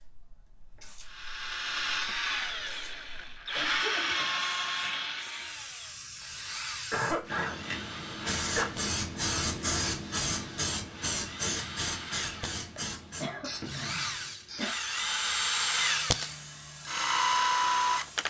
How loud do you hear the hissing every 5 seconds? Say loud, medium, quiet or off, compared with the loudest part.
quiet, loud, loud, quiet.